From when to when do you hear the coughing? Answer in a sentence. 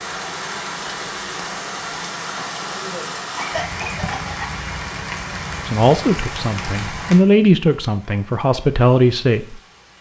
You can hear the coughing from 2.2 to 4.5 s.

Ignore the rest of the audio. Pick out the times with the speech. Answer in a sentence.
The speech can be heard from 5.7 to 9.6 s.